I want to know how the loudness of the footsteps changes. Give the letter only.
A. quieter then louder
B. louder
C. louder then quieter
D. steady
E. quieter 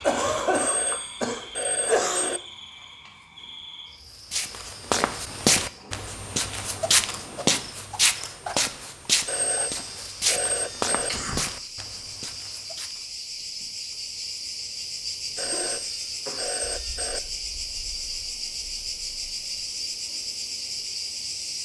E.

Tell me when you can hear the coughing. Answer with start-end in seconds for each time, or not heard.
0.0-2.3, 11.1-11.5, 15.4-16.6.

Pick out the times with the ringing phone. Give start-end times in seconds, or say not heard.
0.5-2.4, 9.2-11.1, 15.3-17.2.